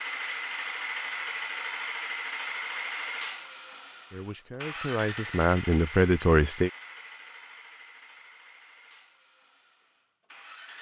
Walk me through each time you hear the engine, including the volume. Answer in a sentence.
The engine can be heard from 0.0 to 10.7 s, getting quieter.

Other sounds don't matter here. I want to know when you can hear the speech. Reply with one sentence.
You can hear the speech from 4.1 to 6.7 s.